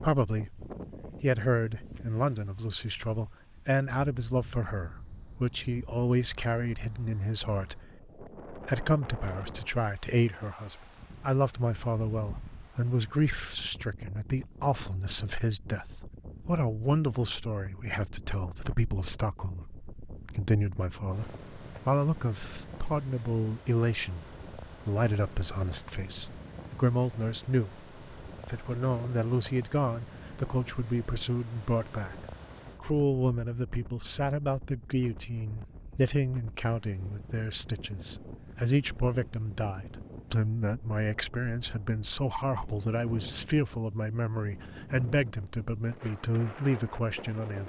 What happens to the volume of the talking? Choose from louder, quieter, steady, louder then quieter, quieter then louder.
steady.